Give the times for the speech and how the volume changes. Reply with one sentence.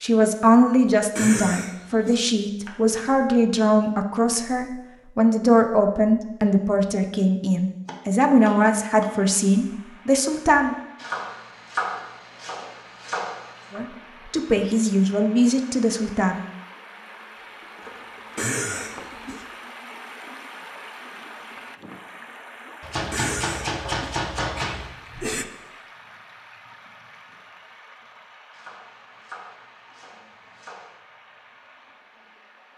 You can hear the speech from 0.0 to 10.8 s, at a steady volume; and briefly from 13.7 to 16.4 s.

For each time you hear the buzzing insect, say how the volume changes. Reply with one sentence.
You can't hear the buzzing insect here.